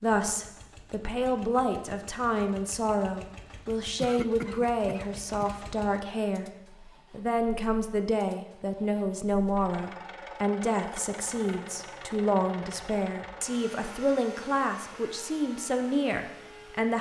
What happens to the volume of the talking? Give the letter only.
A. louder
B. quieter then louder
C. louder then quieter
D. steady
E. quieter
D.